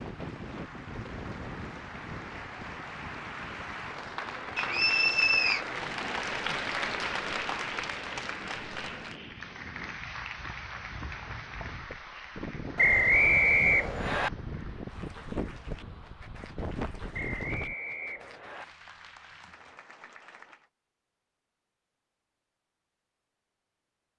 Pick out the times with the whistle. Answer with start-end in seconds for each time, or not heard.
4.5-5.6, 12.8-14.3, 17.1-18.6.